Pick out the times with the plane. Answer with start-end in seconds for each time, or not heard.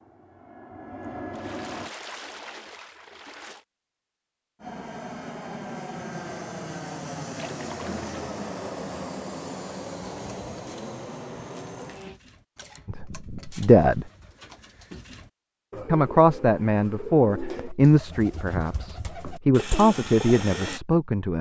0.0-1.9, 4.6-12.2.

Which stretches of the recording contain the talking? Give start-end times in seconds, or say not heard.
12.8-14.1, 15.8-21.3.